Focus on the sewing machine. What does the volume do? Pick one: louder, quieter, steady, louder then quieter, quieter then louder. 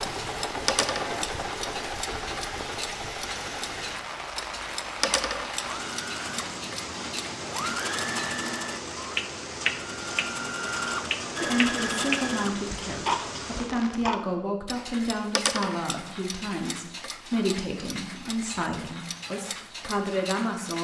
quieter then louder.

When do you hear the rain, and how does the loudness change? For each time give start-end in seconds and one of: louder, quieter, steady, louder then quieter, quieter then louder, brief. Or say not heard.
0.0-14.1 steady.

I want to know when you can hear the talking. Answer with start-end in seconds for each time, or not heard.
11.4-20.7.